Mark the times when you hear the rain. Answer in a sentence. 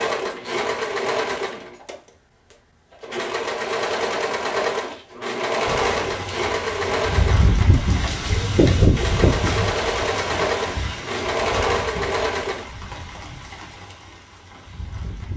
The rain can be heard from 5.7 to 15.3 s.